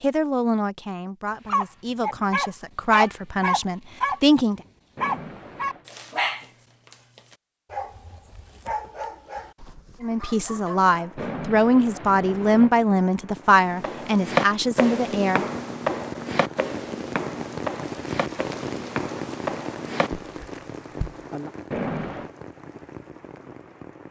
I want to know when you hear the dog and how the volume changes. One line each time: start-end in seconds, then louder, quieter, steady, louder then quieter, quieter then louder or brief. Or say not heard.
1.4-11.3 quieter.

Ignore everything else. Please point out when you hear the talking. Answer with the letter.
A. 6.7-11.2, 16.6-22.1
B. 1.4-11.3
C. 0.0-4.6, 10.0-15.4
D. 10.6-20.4
C.